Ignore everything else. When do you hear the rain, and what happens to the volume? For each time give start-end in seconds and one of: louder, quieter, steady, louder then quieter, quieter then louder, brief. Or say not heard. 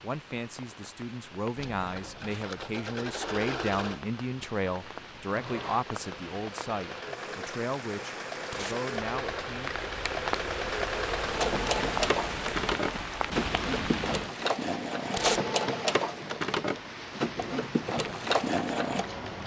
0.0-19.4 louder then quieter.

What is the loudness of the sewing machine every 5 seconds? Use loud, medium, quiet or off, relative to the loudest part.
medium, medium, loud, loud.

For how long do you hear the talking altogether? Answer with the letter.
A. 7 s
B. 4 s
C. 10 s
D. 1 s
C.